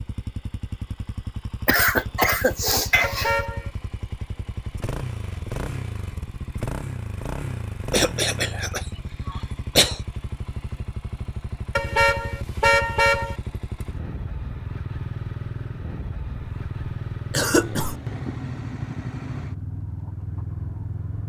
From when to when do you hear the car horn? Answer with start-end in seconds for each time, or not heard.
3.0-3.7, 11.8-13.3.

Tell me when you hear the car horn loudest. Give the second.
13 s.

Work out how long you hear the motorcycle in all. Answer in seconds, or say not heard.
21 s.